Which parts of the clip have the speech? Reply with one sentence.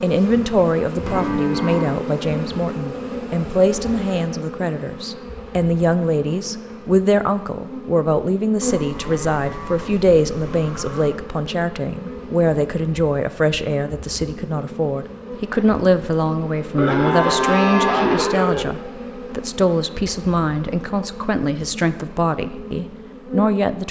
The speech can be heard from 0.0 to 23.8 s.